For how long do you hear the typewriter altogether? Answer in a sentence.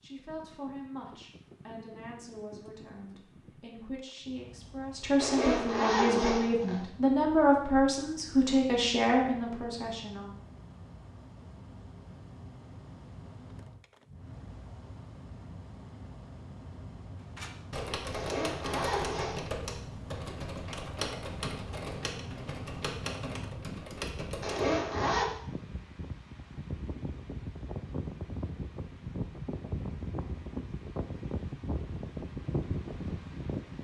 You can hear the typewriter for 7 seconds altogether.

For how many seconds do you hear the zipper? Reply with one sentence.
The zipper can be heard for 4 seconds in total.